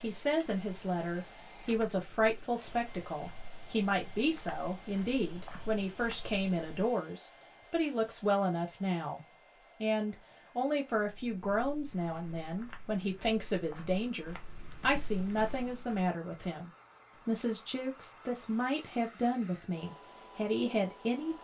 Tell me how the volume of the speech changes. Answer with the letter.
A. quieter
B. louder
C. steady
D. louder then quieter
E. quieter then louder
C.